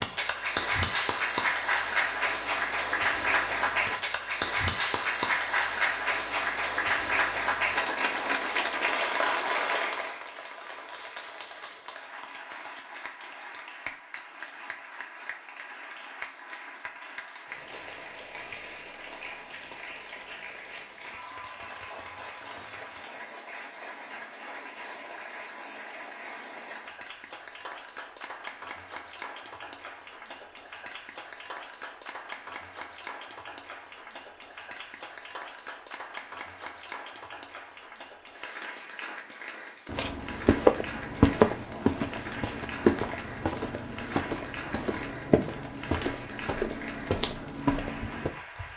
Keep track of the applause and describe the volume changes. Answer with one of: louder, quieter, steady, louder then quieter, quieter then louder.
quieter.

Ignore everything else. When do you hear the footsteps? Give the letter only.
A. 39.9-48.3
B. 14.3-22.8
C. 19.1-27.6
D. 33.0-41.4
A.